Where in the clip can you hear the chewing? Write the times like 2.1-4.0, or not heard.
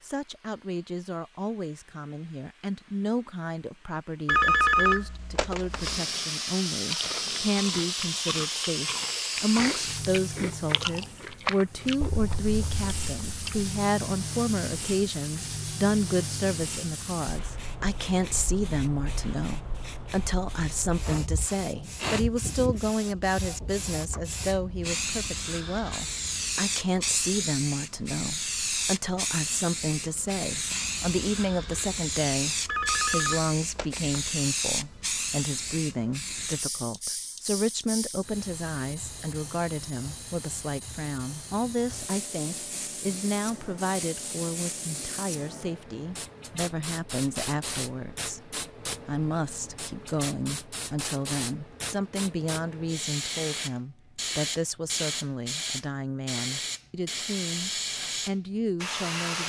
6.8-13.7.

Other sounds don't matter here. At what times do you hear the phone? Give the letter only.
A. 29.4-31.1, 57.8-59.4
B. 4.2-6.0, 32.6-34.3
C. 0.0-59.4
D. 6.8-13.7
B.